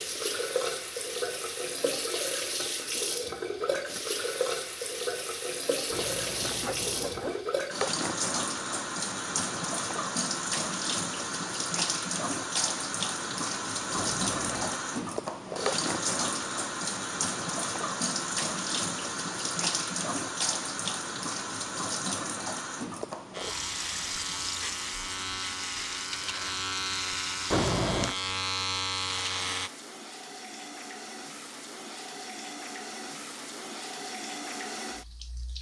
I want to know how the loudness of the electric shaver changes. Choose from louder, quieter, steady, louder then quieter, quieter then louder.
louder.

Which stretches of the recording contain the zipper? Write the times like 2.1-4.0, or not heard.
5.9-7.5, 13.9-14.8, 27.5-28.1.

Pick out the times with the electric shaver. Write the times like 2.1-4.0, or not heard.
23.3-29.7.